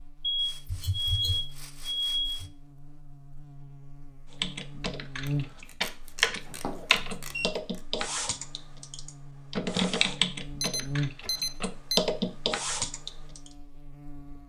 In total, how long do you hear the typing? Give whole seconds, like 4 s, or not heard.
9 s.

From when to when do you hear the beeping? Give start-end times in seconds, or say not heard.
0.2-2.5, 6.5-7.5, 10.6-12.0.